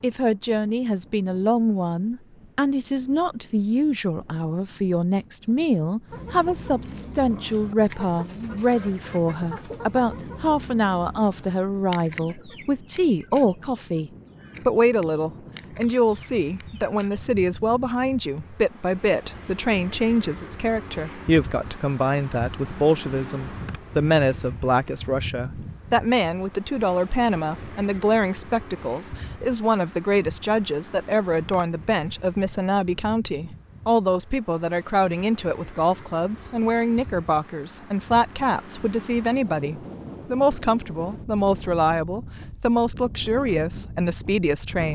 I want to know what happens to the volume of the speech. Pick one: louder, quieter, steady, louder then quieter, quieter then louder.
steady.